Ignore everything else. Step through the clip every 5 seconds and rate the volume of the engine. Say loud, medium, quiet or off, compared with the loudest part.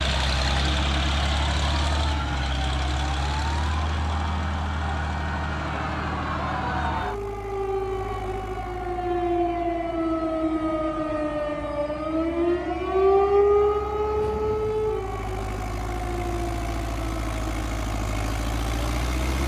loud, medium, quiet, loud.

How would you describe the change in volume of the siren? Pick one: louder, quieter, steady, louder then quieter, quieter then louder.
louder then quieter.